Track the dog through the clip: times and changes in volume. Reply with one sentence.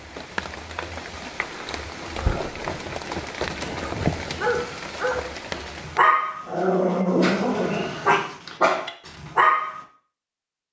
You can hear the dog from 4.2 to 9.8 s, getting louder.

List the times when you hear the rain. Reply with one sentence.
You can hear the rain from 0.0 to 6.0 s.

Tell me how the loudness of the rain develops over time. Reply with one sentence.
The volume of the rain goes up, then down.